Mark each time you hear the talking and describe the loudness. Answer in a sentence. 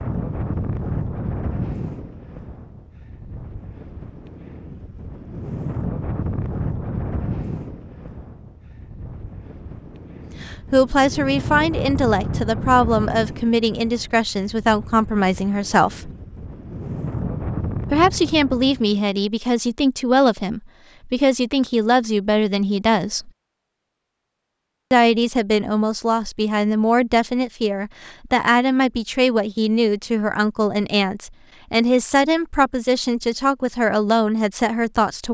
The talking can be heard from 10.4 to 16.1 s, at a steady volume; from 17.9 to 23.3 s, at a steady volume; and from 24.9 to 35.2 s, at a steady volume.